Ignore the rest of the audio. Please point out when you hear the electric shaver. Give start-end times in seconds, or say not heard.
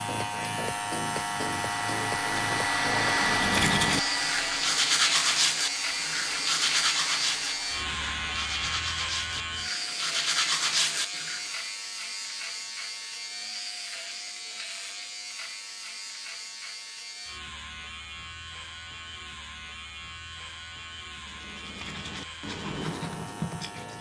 0.0-23.9.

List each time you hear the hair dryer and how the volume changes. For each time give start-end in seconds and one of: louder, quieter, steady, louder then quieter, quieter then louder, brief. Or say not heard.
0.0-8.9 louder then quieter.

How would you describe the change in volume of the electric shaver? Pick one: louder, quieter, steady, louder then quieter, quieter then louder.
quieter.